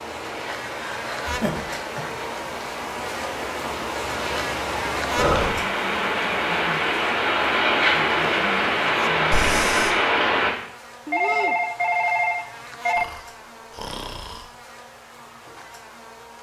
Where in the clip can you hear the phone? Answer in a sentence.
The phone can be heard from 11.1 to 13.1 s.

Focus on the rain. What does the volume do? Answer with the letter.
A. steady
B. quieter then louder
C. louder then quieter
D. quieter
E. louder
E.